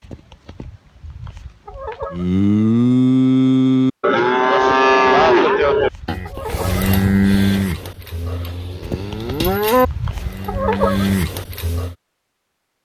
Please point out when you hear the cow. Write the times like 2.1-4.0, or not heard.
2.1-11.9.